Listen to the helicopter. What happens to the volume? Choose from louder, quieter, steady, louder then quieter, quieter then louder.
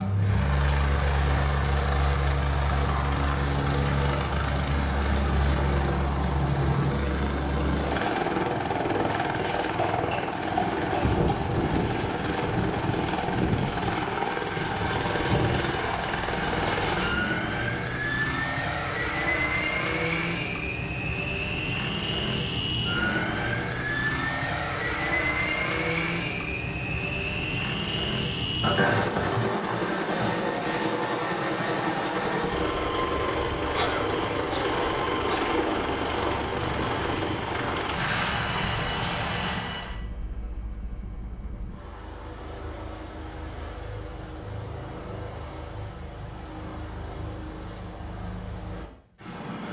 quieter.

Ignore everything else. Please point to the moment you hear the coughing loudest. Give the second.
29 s.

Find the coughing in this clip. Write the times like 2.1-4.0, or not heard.
9.8-11.4, 28.6-30.4, 33.7-35.6.